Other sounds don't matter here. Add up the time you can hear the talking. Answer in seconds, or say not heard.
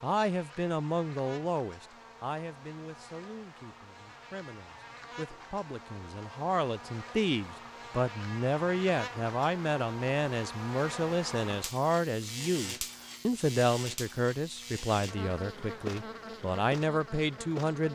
18 s.